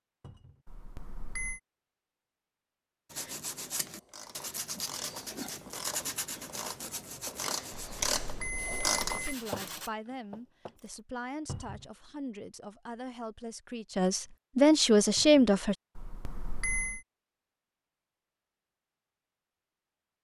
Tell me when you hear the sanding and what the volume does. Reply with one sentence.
You can hear the sanding from 3.1 to 9.9 s, getting quieter.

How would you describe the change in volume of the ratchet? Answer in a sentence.
The volume of the ratchet goes up, then down.